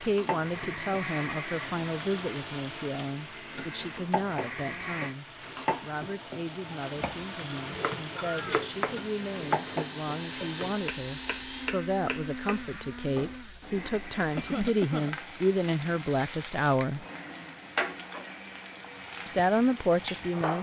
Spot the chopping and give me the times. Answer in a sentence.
You can hear the chopping from 7.0 to 13.4 s.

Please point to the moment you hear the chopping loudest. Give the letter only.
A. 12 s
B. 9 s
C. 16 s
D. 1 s
B.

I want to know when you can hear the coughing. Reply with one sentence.
You can hear the coughing from 8.0 to 8.6 s and from 14.3 to 15.1 s.